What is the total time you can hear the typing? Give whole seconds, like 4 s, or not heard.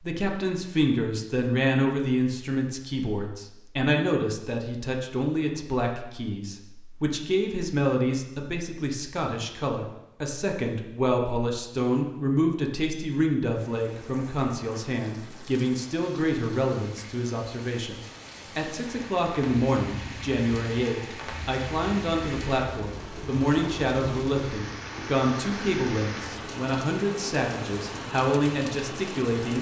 not heard.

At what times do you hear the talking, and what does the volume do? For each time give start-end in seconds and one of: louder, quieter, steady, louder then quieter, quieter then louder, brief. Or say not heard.
0.0-29.5 steady.